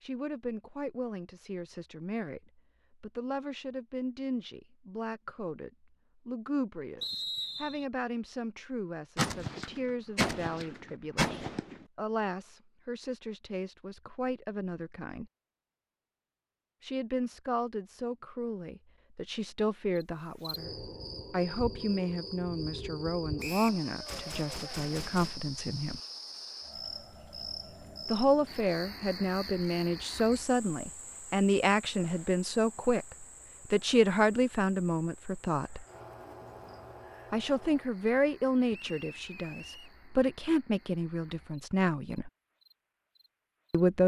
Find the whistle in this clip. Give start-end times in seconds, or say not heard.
7.0-7.8, 23.4-23.8, 38.7-39.9.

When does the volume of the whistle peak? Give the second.
7 s.